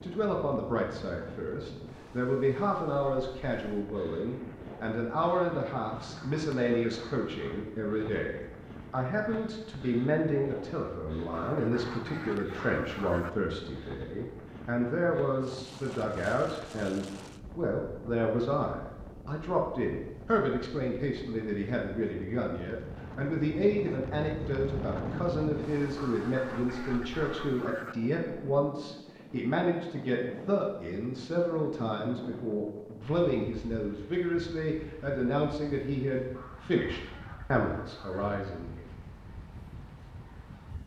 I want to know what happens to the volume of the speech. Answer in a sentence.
The volume of the speech stays about the same.